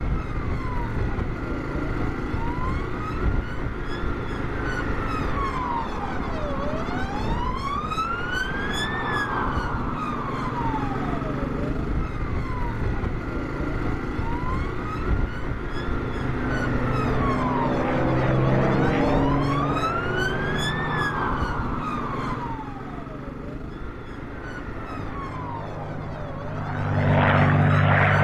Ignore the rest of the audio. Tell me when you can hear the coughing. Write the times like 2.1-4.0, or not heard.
not heard.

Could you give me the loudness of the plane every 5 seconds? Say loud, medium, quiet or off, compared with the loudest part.
off, off, off, loud, medium, loud.